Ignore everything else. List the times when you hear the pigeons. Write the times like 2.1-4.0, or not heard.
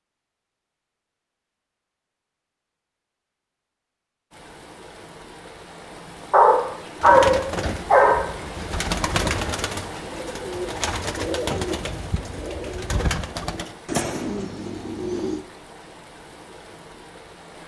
7.0-15.4.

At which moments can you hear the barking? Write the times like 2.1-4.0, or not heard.
6.3-8.2.